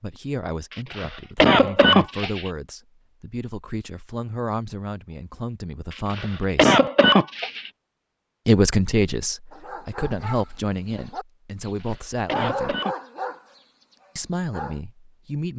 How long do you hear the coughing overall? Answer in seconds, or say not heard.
5 s.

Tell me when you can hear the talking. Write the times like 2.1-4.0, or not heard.
0.0-6.8, 8.4-12.8, 14.2-15.5.